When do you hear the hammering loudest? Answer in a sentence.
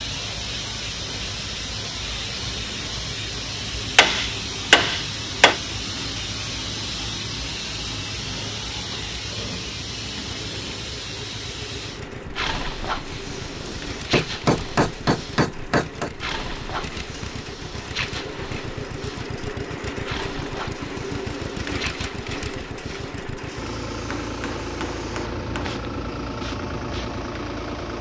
The loudest moment of the hammering is at 5 seconds.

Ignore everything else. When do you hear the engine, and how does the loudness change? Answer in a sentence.
You can hear the engine from 0.1 to 27.9 s, getting louder.